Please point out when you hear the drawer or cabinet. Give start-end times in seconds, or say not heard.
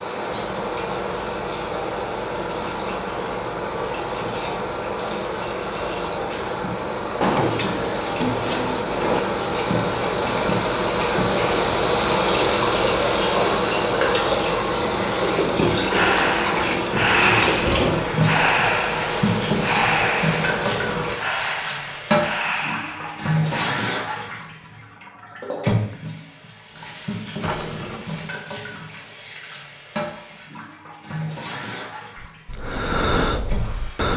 7.2-9.2, 27.4-28.2.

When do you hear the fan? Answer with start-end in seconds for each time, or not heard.
0.0-21.1.